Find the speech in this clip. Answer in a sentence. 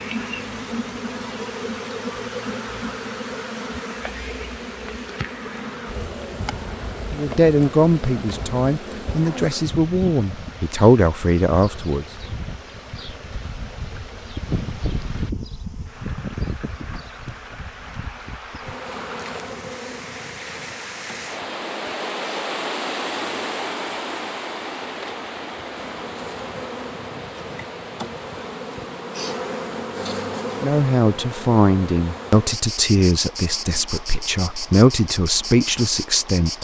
You can hear the speech from 7.1 to 12.1 s and from 30.6 to 36.5 s.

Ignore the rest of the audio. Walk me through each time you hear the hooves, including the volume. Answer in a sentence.
You can't hear the hooves here.